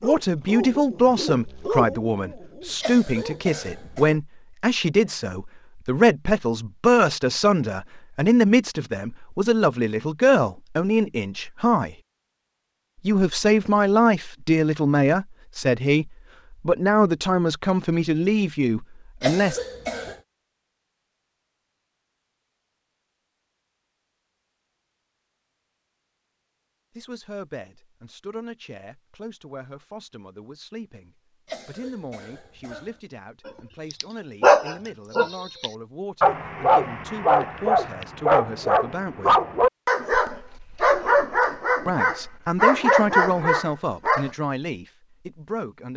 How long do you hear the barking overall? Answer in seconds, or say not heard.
15 s.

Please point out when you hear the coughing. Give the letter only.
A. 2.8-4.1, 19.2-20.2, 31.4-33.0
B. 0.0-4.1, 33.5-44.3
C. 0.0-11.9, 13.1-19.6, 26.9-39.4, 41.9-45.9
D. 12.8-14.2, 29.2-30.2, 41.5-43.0
A.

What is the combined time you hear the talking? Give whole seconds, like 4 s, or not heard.
35 s.